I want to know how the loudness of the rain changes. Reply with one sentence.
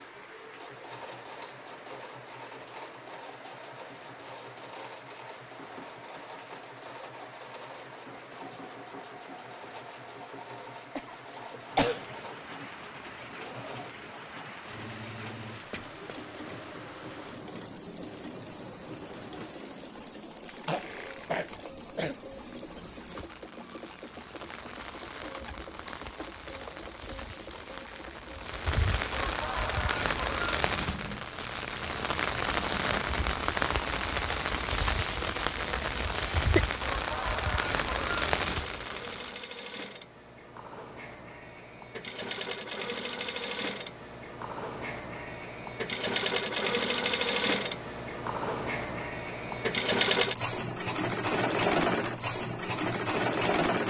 The volume of the rain goes up.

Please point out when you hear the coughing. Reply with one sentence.
You can hear the coughing from 10.6 to 12.1 s, from 20.6 to 22.1 s and from 36.1 to 36.6 s.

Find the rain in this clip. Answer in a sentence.
The rain can be heard from 0.0 to 39.4 s.